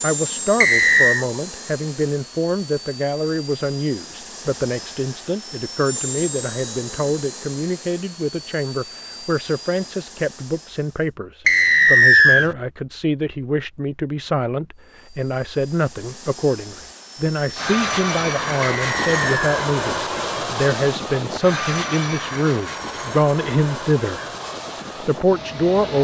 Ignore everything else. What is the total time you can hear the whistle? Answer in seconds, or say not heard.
3 s.